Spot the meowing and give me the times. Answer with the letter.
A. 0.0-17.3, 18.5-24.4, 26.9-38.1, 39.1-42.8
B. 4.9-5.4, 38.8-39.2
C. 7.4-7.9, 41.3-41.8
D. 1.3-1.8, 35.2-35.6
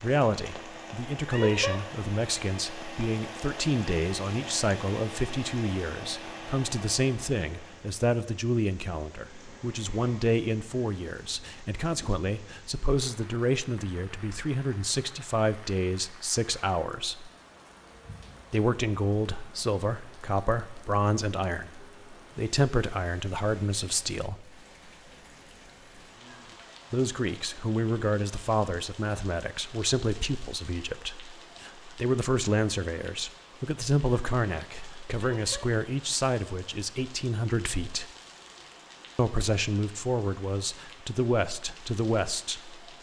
D.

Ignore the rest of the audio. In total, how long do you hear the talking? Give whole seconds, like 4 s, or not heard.
38 s.